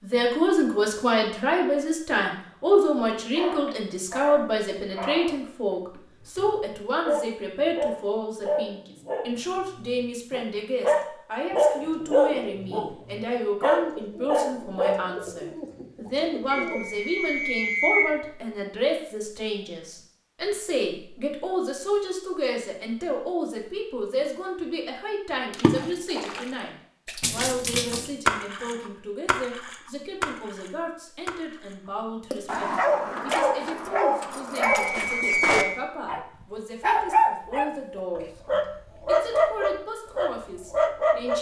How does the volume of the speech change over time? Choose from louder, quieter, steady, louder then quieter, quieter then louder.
quieter.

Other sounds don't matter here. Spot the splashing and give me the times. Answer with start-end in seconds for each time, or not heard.
25.5-33.5.